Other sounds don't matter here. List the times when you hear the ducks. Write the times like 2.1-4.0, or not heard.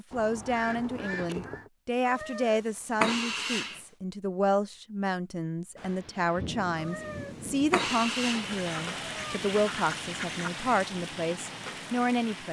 0.1-1.7, 8.4-10.9.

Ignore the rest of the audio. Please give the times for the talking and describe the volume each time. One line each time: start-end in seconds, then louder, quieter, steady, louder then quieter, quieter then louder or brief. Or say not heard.
0.0-12.4 steady.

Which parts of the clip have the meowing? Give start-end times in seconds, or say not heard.
2.0-3.8, 6.8-9.4.